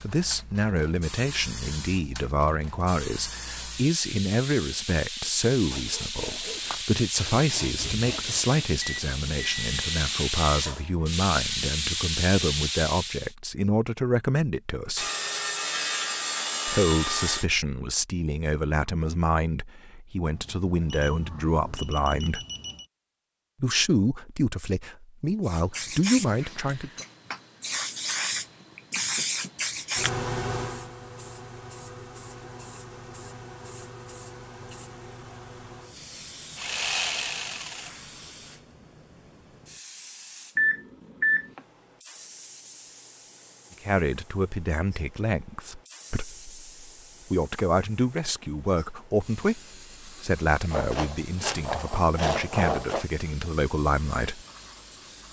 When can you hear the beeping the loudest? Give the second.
41 s.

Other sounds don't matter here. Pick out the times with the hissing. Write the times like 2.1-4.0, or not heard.
0.0-13.3, 25.4-55.2.